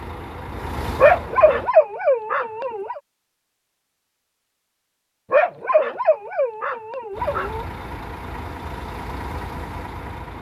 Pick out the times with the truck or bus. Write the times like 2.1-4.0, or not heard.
0.0-1.8, 7.1-10.3.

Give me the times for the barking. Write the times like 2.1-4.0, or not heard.
0.9-3.0, 5.3-7.7.